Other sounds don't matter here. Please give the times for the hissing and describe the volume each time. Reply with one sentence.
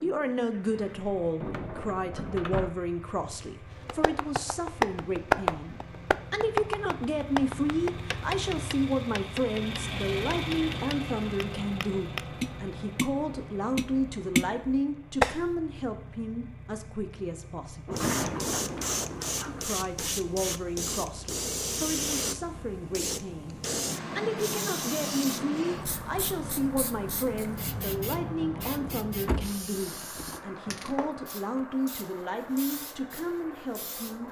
The hissing can be heard from 17.9 to 34.2 s, getting quieter.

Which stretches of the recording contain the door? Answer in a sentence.
The door can be heard from 1.4 to 2.8 s, from 17.9 to 19.6 s and from 29.2 to 30.9 s.